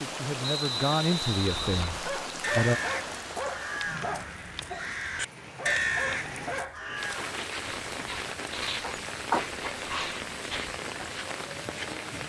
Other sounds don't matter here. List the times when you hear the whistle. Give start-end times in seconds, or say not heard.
0.4-1.9.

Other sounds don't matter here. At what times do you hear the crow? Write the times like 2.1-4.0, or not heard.
1.4-7.2.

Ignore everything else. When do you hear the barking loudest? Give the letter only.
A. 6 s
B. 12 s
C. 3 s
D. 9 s
D.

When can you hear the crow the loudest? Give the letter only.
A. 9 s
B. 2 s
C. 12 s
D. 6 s
D.